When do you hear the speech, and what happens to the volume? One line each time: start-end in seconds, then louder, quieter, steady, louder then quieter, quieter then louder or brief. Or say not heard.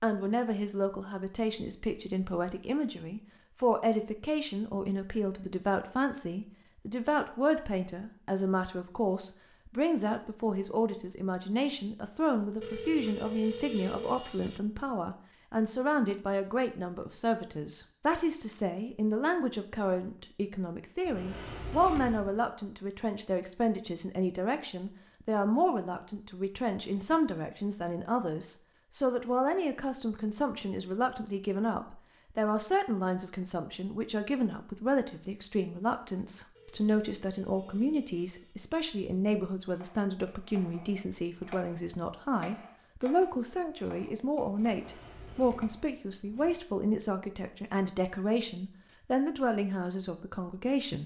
0.0-51.0 steady.